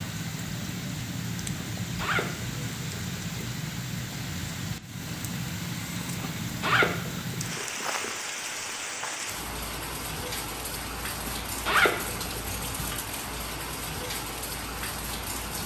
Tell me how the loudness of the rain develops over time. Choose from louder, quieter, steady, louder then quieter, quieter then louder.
steady.